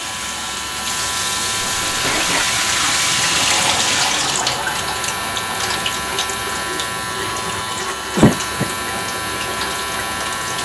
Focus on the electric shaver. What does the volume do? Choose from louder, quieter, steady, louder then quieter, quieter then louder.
steady.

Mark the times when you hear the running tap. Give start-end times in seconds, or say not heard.
0.0-10.6.